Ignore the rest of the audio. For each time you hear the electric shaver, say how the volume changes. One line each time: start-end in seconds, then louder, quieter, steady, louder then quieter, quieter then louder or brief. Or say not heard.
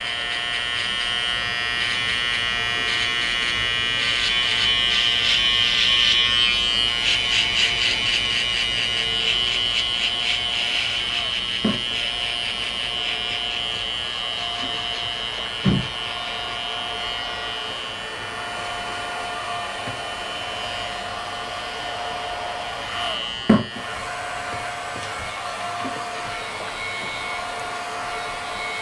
0.0-28.7 quieter.